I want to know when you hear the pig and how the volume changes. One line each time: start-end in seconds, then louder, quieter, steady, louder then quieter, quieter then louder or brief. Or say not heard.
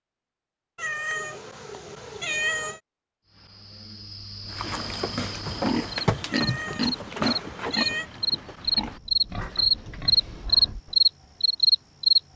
4.5-11.1 quieter.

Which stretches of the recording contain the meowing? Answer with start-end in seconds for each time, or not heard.
0.8-2.8, 6.2-8.1.